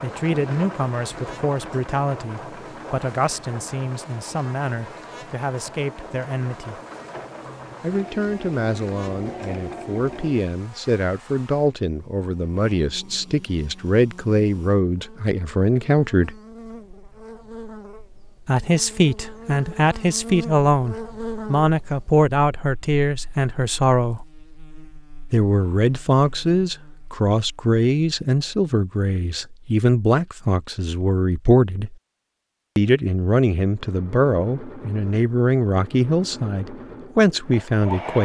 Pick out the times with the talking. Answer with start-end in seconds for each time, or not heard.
0.0-6.8, 7.8-16.4, 18.4-24.2, 25.3-31.9, 32.8-38.1.